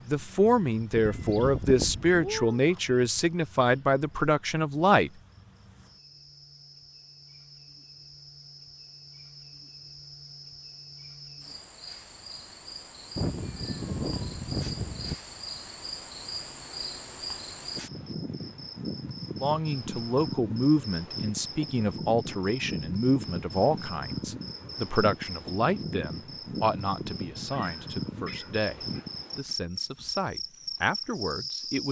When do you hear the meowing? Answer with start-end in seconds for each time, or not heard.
0.9-2.6, 13.2-15.2, 27.5-29.1.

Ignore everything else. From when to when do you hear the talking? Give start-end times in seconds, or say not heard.
0.1-5.1, 19.4-31.8.